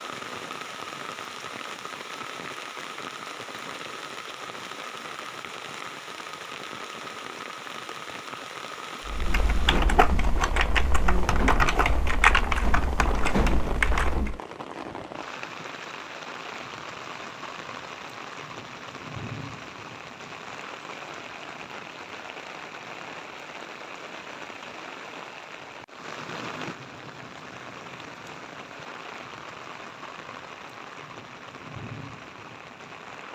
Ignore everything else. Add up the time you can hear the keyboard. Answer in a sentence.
The keyboard can be heard for 5 seconds in total.